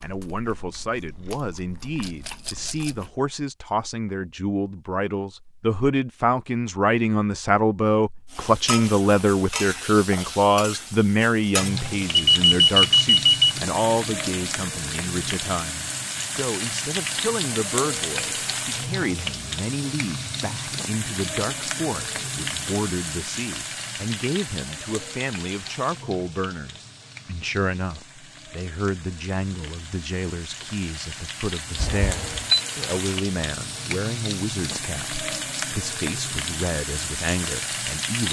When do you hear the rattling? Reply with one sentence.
The rattling can be heard from 2.0 to 3.0 s.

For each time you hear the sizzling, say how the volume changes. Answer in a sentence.
The sizzling can be heard from 8.3 to 38.2 s, getting quieter then louder.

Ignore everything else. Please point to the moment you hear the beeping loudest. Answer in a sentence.
The volume of the beeping peaks at 13 seconds.